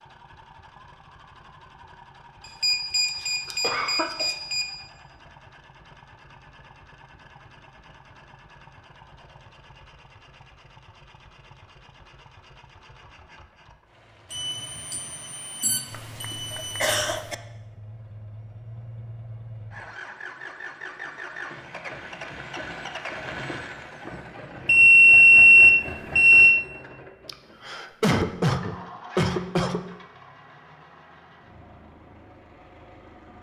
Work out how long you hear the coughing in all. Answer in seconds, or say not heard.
5 s.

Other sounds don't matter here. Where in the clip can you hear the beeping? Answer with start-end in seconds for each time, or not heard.
2.6-4.7, 14.3-17.0, 24.6-26.6.